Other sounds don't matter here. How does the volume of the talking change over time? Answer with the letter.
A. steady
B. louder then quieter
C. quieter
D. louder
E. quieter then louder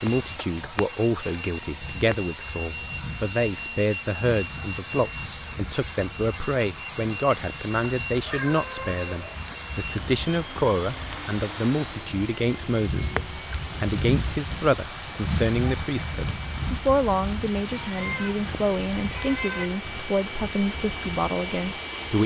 A.